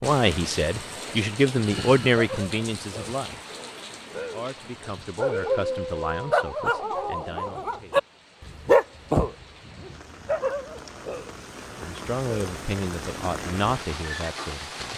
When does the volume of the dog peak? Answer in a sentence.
The loudest moment of the dog is at 9 seconds.